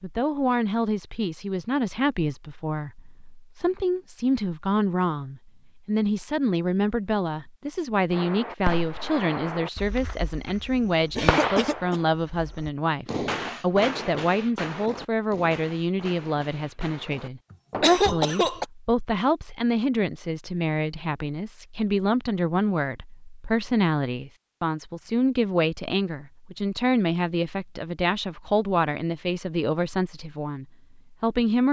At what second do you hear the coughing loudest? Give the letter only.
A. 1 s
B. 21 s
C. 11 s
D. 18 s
D.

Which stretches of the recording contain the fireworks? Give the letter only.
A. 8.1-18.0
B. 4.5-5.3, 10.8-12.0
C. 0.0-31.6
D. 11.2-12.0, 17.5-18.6
A.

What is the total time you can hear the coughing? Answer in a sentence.
You can hear the coughing for 2 seconds altogether.